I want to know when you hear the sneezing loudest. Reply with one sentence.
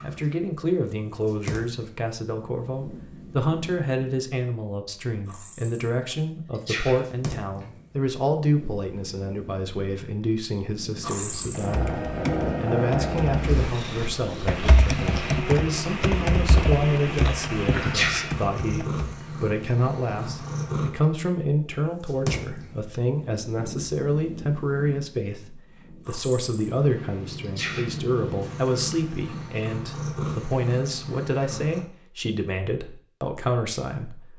The volume of the sneezing peaks at 18 seconds.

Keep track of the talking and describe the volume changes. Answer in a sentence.
The loudness of the talking stays about the same.